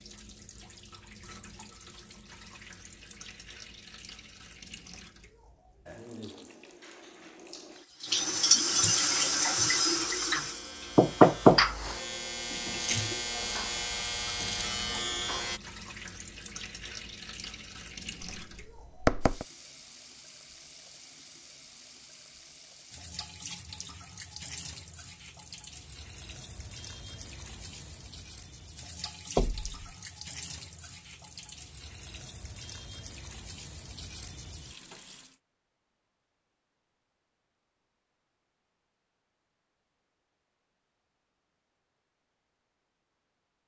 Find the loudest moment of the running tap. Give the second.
9 s.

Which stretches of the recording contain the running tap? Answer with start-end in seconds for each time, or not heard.
0.0-35.4.